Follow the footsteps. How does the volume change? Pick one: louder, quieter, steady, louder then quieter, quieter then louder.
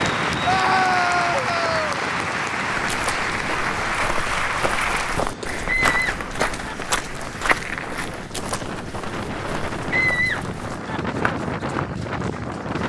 louder then quieter.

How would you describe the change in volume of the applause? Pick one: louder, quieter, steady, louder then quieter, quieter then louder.
quieter.